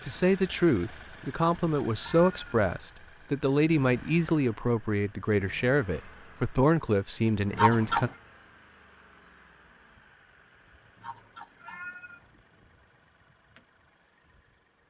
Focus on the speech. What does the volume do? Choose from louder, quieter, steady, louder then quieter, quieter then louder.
steady.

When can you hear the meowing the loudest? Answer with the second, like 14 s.
8 s.